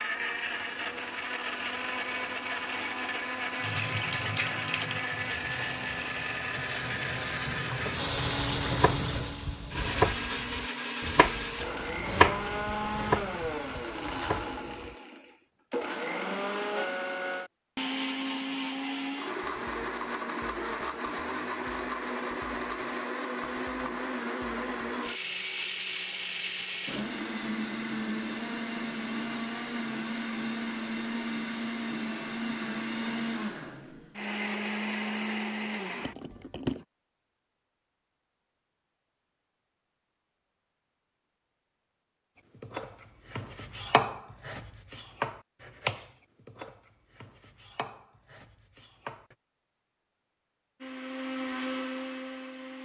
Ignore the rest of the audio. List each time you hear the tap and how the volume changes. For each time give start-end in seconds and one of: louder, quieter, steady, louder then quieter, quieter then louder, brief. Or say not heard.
3.6-9.3 quieter then louder.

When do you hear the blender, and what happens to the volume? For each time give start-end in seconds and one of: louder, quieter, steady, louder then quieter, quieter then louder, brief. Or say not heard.
0.0-36.9 steady
50.8-52.7 brief.